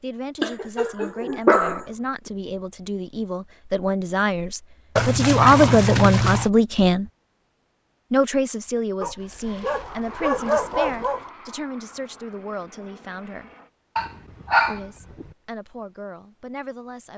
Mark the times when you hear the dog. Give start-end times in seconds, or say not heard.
0.4-1.9, 5.0-6.5, 9.0-11.3, 13.9-15.2.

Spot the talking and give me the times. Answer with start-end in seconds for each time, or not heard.
0.0-7.1, 8.1-13.5, 14.7-17.1.